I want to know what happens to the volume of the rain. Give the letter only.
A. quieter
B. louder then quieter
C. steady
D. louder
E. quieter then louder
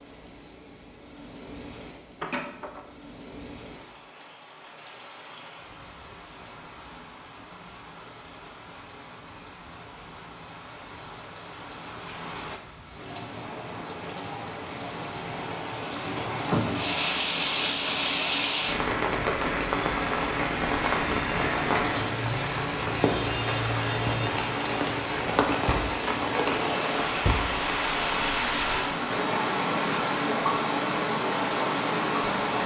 D.